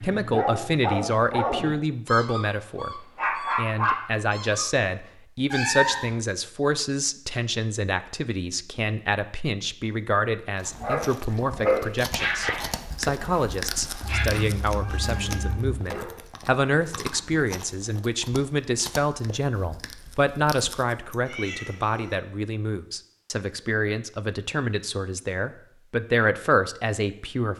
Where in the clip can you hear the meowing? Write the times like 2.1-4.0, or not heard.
5.5-6.0, 14.0-15.8, 21.2-22.1.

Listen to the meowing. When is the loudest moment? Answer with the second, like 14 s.
6 s.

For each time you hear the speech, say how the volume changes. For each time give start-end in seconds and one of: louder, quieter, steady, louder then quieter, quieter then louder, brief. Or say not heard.
0.0-27.5 steady.